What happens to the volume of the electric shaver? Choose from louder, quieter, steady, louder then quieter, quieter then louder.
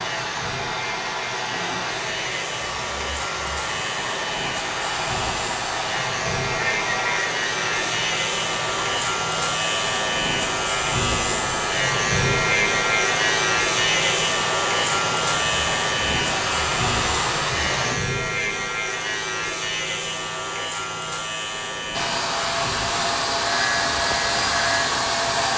louder then quieter.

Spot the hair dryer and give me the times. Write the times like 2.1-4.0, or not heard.
0.0-18.0, 21.9-25.5.